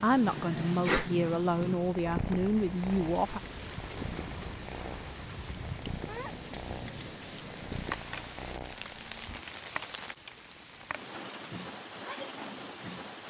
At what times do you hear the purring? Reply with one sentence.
The purring can be heard from 0.0 to 9.5 s.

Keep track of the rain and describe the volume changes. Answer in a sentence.
The loudness of the rain stays about the same.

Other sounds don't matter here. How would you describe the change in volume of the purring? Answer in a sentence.
The volume of the purring goes down.